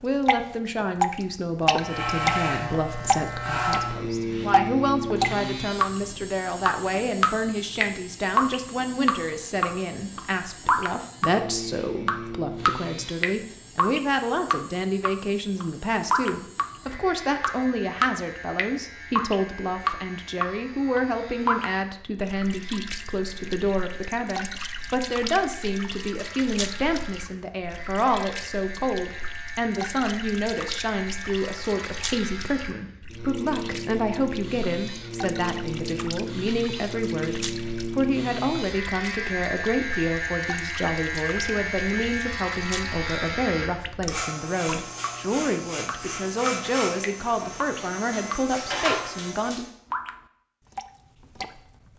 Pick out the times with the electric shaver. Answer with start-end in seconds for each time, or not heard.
1.6-49.7.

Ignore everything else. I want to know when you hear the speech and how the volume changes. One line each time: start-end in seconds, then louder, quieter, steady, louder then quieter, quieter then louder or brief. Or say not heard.
0.0-49.6 steady.